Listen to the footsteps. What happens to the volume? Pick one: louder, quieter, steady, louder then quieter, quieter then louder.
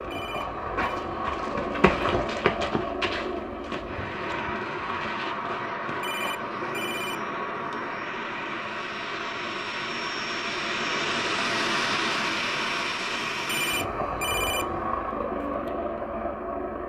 louder then quieter.